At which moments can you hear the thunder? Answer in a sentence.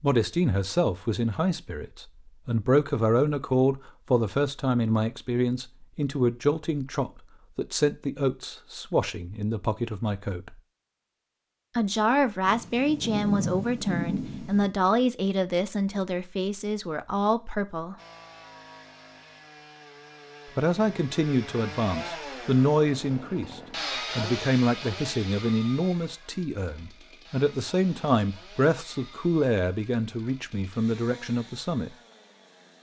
You can hear the thunder from 12.4 to 14.7 s.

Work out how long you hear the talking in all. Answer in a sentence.
The talking can be heard for 28 seconds in total.